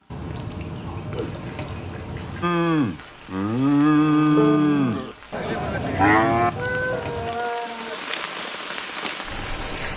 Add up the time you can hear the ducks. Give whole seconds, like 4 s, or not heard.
4 s.